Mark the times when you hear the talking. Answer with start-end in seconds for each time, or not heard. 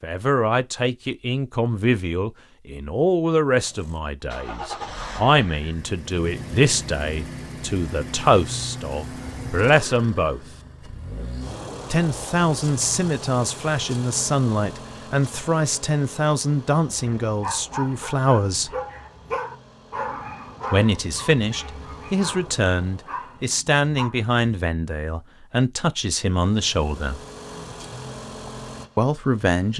0.0-10.4, 11.9-18.7, 20.7-27.2, 28.9-29.7.